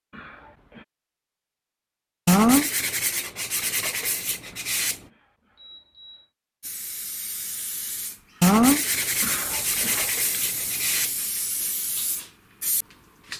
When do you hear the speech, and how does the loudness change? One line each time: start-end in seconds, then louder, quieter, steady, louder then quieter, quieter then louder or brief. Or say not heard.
not heard.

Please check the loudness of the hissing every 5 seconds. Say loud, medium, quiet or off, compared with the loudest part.
off, loud, loud.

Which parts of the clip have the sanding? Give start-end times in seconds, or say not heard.
2.2-5.0, 8.4-11.1.